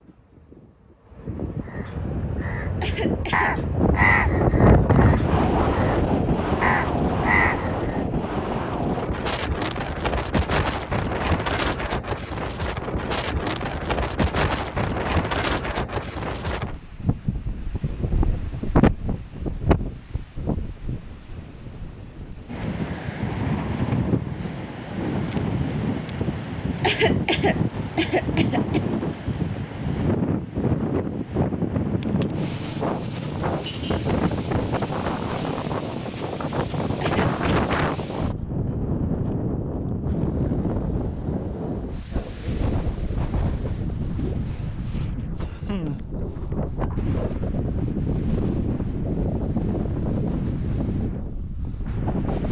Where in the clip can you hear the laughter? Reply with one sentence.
You can hear the laughter from 2.8 to 3.5 s, from 26.8 to 28.8 s and from 37.0 to 37.7 s.